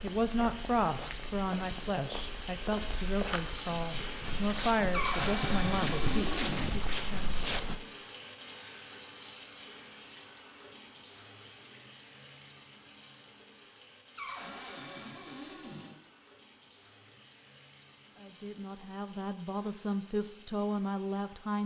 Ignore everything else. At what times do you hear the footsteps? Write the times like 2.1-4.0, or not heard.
0.0-7.8.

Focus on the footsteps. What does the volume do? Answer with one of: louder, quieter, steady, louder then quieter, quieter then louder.
louder.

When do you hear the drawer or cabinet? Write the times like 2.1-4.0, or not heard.
4.9-6.7, 14.2-15.9.